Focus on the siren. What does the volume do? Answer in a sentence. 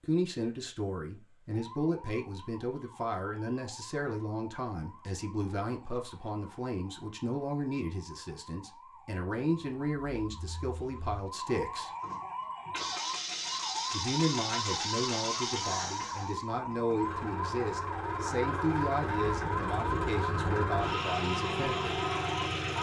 The loudness of the siren goes up.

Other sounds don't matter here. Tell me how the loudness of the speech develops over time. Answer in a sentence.
The loudness of the speech stays about the same.